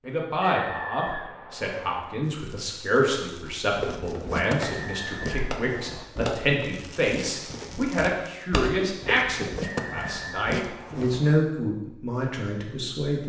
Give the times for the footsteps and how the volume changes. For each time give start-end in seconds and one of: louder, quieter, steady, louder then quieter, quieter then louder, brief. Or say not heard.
3.6-11.2 quieter then louder.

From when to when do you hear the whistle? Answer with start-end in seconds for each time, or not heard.
0.6-2.0, 4.6-6.1, 9.6-11.3.